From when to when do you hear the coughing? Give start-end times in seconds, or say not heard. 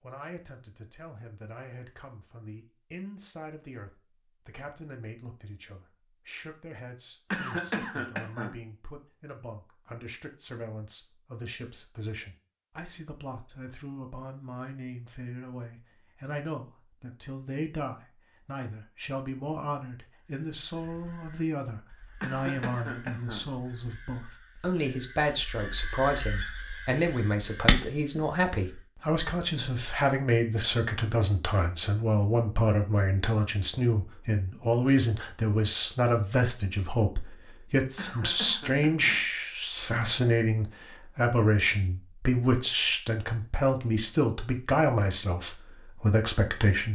7.3-8.6, 22.2-23.5, 38.0-39.2.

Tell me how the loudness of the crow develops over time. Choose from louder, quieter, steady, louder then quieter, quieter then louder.
louder.